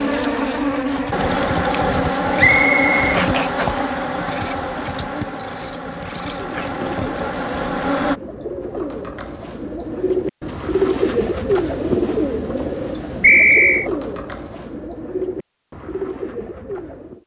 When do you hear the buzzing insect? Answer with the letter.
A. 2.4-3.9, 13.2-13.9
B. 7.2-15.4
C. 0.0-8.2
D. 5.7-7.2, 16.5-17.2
C.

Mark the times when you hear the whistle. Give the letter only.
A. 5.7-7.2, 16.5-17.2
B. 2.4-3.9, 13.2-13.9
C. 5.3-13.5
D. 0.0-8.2
B.